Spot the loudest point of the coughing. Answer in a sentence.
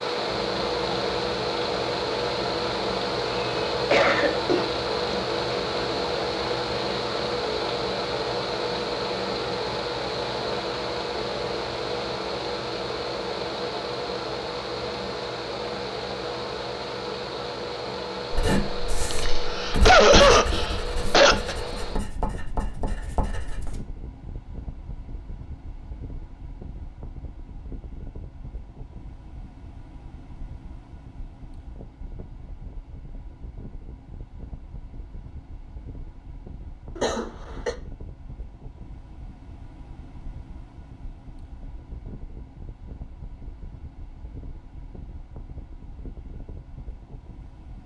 The volume of the coughing peaks at 20 seconds.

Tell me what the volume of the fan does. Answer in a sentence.
The volume of the fan goes down.